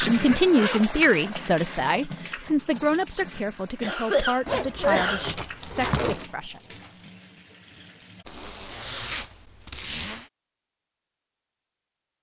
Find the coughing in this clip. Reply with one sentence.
You can hear the coughing from 3.8 to 5.2 s.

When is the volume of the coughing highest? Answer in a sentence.
The loudest moment of the coughing is at 5 seconds.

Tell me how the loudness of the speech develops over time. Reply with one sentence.
The volume of the speech goes down.